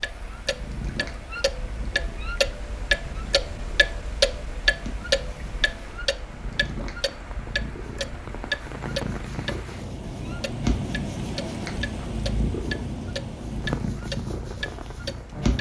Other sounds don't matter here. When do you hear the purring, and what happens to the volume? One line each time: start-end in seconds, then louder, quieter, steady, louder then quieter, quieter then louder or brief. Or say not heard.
0.3-15.5 louder.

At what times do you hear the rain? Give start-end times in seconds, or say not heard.
0.0-15.5.